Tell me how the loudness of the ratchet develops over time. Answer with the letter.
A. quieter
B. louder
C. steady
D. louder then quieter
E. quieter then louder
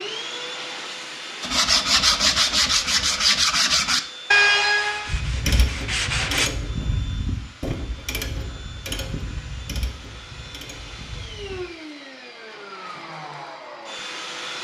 A.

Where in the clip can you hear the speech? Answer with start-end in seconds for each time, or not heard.
not heard.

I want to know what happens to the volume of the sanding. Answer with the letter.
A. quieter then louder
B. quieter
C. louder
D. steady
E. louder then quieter
B.